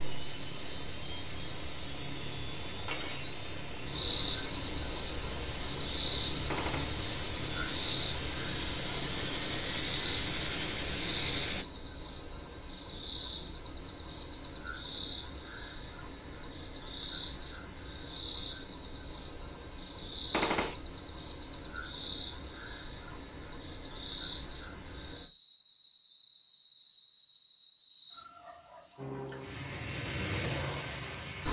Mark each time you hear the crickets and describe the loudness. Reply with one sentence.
The crickets can be heard from 0.0 to 31.4 s, getting quieter then louder.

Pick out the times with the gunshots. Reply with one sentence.
You can hear the gunshots from 6.5 to 6.9 s and from 20.3 to 20.8 s.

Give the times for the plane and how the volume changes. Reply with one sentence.
You can hear the plane from 0.0 to 11.7 s, getting louder; and briefly from 28.9 to 31.4 s.